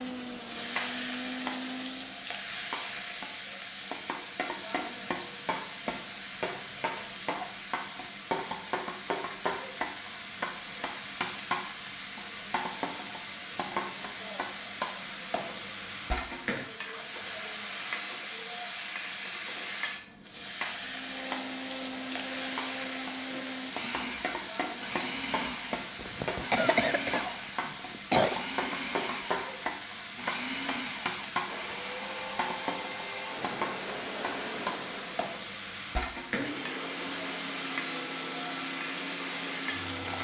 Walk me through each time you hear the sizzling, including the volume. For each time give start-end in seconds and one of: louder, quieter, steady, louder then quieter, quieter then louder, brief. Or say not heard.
0.0-40.1 steady.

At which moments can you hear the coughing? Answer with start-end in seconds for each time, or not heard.
25.9-28.4.